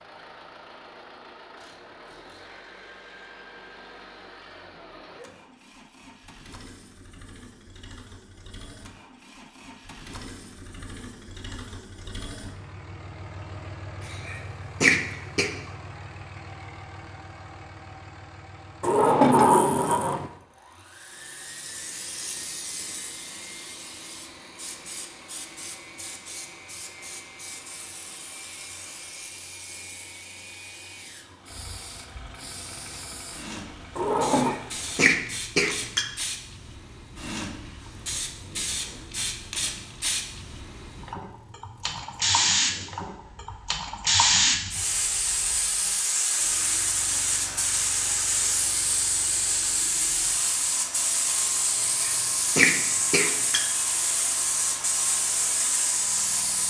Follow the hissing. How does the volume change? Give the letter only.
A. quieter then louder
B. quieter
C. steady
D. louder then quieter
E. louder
E.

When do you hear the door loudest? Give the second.
19 s.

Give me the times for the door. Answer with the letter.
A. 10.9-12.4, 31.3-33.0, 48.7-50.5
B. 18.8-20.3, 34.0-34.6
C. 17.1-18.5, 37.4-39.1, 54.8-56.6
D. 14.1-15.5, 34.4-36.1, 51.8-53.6
B.